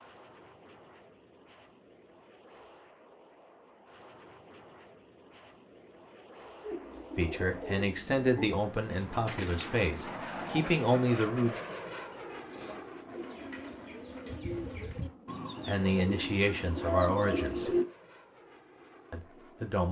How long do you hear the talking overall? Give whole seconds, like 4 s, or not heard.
7 s.